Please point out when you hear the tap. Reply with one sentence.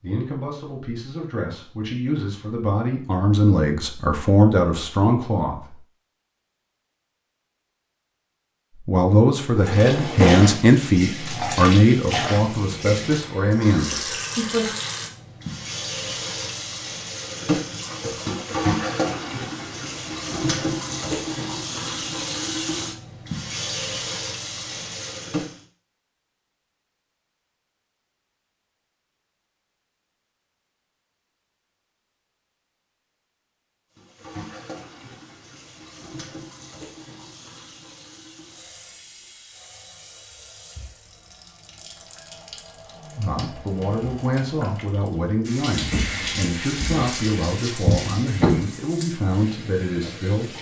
The tap can be heard from 9.6 to 25.6 s and from 34.0 to 50.5 s.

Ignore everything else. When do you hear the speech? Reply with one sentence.
The speech can be heard from 0.0 to 5.8 s, from 8.8 to 14.7 s and from 43.1 to 50.5 s.